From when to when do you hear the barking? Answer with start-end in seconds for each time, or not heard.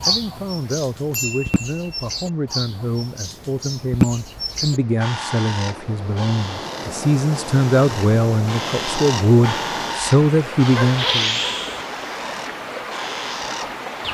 10.7-11.8.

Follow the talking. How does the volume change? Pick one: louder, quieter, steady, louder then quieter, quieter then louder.
louder.